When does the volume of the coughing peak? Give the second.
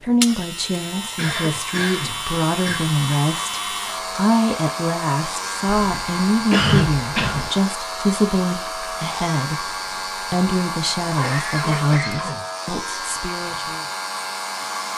7 s.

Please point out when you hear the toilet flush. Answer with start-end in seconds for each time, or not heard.
not heard.